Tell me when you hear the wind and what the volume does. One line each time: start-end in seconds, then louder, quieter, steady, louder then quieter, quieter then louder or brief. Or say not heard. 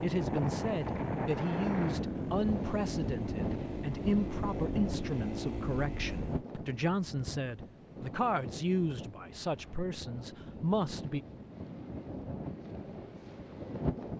0.0-14.1 quieter.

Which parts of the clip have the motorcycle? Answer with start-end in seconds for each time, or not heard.
0.1-6.5.